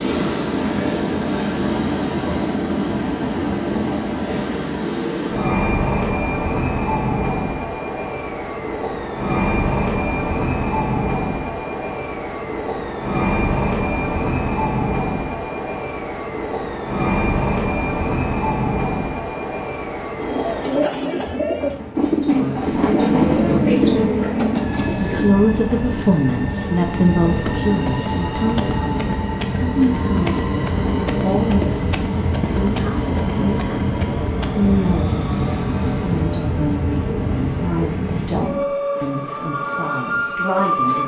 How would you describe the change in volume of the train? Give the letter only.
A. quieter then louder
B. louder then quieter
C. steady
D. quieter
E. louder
C.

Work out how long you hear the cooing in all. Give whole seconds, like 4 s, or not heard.
5 s.